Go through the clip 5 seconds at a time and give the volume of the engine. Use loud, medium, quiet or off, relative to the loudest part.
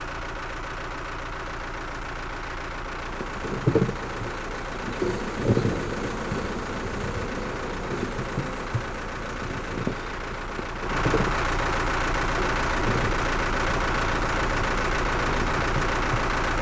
medium, medium, loud, loud.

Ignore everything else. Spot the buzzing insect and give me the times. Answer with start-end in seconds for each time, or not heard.
3.0-16.4.